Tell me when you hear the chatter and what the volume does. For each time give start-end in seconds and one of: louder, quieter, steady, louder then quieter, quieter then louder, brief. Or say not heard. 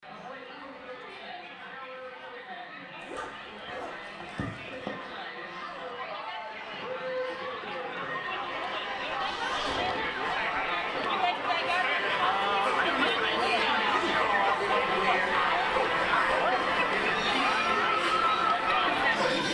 0.0-19.4 louder.